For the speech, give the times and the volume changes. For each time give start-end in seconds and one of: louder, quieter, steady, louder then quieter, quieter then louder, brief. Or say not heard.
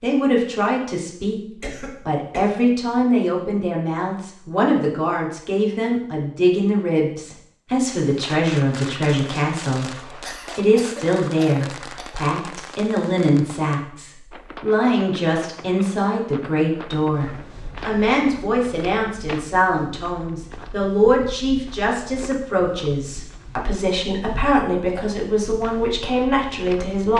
0.0-1.4 brief
2.0-9.9 steady
10.6-27.1 steady.